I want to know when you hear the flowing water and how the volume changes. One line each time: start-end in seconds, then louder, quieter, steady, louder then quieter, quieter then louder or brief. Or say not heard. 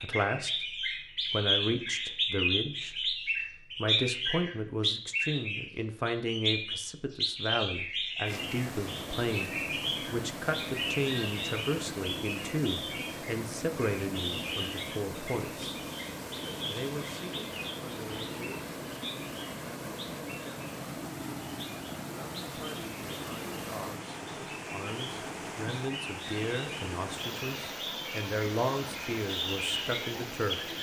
8.2-30.7 steady.